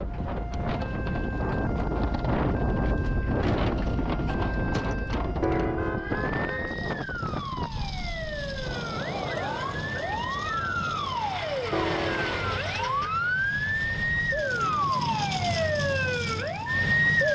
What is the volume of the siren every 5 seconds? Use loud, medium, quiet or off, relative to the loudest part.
quiet, medium, loud, loud.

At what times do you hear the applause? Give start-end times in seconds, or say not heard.
not heard.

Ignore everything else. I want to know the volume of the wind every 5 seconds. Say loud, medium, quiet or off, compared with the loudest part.
loud, medium, medium, quiet.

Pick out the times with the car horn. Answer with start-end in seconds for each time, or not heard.
5.4-6.8, 11.7-13.1.